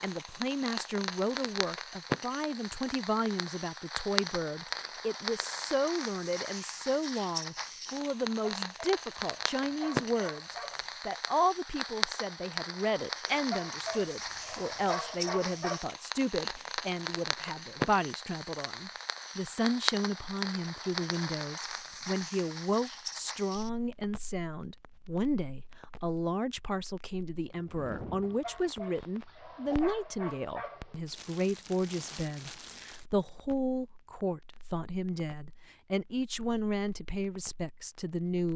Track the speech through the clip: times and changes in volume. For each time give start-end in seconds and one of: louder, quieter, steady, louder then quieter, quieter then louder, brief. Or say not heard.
0.0-38.5 steady.